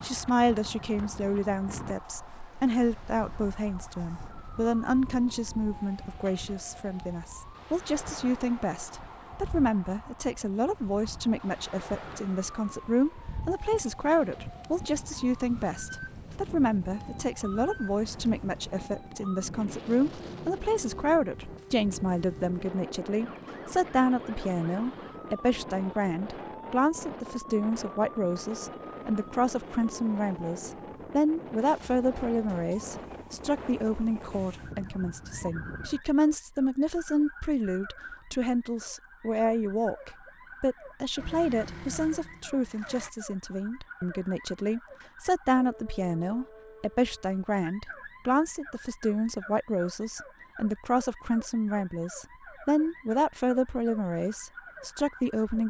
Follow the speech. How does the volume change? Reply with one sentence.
The loudness of the speech stays about the same.